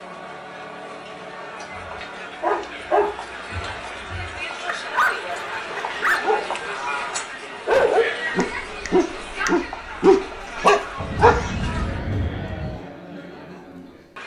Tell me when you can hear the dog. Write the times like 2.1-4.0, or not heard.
1.8-6.5, 7.7-11.7.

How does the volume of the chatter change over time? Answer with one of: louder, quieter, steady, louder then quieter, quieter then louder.
louder then quieter.